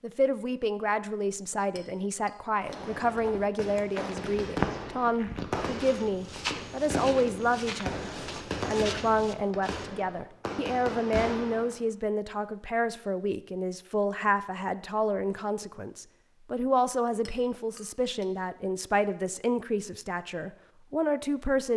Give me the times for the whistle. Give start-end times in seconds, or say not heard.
not heard.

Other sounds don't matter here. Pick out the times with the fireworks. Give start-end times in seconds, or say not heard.
2.6-11.8.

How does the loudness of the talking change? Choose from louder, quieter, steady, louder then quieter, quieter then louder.
steady.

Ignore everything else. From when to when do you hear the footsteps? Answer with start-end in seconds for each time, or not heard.
3.1-9.8.